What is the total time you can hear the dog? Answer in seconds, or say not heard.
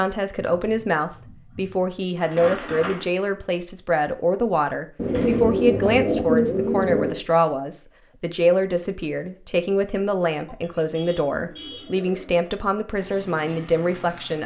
not heard.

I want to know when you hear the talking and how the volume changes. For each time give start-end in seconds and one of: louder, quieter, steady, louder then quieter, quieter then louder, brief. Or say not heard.
0.0-14.4 steady.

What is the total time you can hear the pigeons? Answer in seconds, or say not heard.
7 s.